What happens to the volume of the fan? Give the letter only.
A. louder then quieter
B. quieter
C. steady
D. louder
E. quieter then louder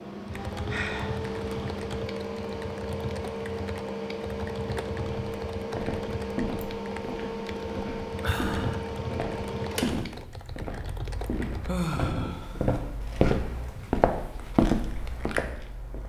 B.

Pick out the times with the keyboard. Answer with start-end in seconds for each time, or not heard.
0.2-11.7.